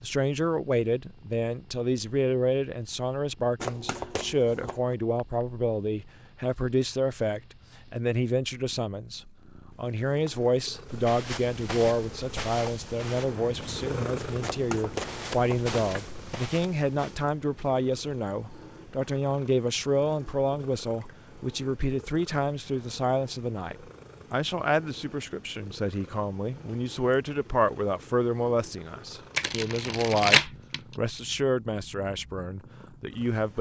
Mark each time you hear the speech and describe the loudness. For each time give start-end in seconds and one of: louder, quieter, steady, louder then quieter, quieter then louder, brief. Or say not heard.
0.0-33.5 steady.